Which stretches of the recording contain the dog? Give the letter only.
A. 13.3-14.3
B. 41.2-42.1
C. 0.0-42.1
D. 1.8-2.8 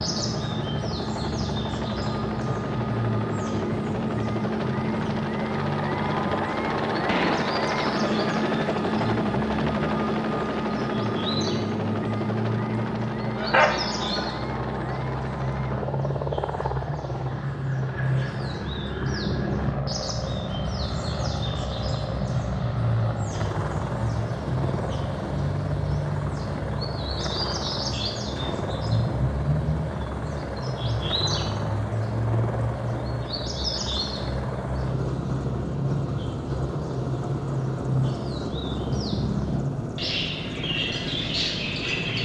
A.